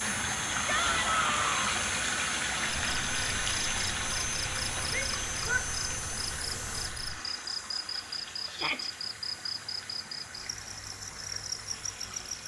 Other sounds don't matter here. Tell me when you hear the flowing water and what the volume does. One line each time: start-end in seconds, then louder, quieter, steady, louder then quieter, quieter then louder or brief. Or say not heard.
0.0-12.4 quieter.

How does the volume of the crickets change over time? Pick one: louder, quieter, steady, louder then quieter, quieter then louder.
steady.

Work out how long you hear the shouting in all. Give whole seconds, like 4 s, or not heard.
2 s.